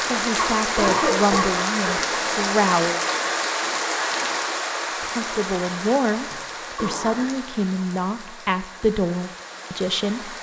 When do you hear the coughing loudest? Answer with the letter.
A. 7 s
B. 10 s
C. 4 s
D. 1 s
D.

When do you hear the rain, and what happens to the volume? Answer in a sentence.
The rain can be heard from 0.0 to 10.3 s, getting quieter.